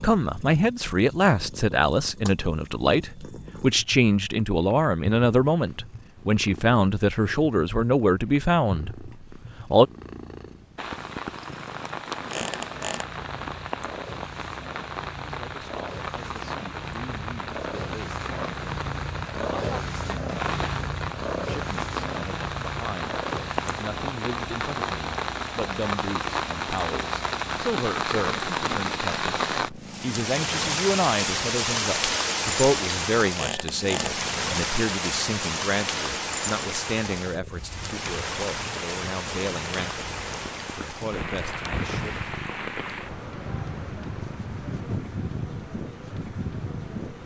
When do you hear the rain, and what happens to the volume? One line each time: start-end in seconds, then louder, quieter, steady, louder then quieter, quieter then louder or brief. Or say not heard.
10.8-47.2 louder then quieter.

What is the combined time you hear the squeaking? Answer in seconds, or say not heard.
2 s.